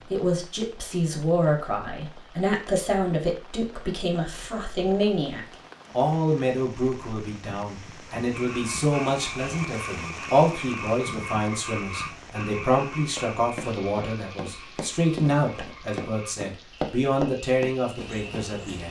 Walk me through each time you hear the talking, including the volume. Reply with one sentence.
The talking can be heard from 0.1 to 18.8 s, at a steady volume.